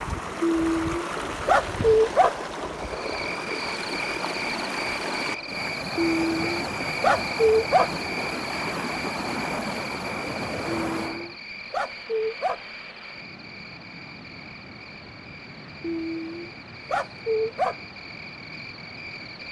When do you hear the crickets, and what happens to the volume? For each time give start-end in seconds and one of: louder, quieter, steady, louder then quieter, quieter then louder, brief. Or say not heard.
2.8-19.4 quieter.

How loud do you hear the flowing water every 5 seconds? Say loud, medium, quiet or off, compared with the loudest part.
loud, loud, medium, quiet.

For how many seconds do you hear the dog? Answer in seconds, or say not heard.
8 s.